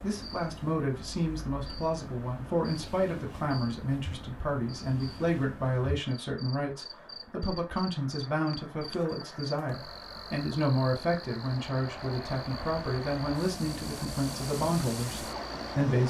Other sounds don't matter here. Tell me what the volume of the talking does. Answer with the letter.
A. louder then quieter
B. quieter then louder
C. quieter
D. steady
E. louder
D.